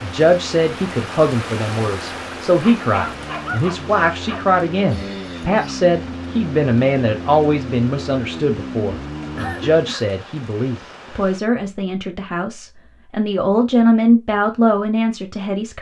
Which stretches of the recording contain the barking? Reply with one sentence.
The barking can be heard from 2.6 to 4.5 s.